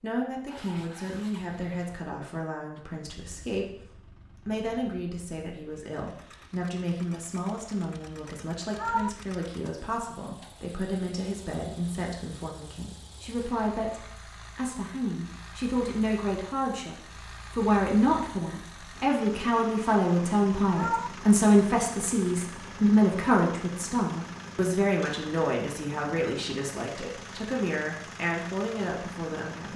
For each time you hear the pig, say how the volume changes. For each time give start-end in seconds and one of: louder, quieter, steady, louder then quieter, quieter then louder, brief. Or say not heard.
not heard.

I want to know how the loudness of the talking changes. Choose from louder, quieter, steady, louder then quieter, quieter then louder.
louder then quieter.